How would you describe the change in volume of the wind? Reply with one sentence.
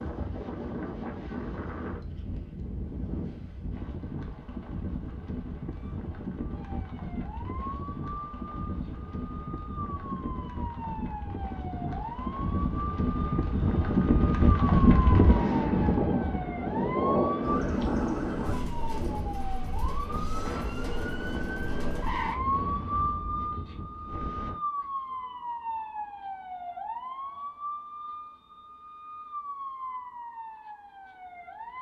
The loudness of the wind goes up, then down.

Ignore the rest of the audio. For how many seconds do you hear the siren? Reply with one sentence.
The siren can be heard for 26 seconds in total.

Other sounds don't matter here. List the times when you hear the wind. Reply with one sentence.
You can hear the wind from 0.0 to 24.6 s.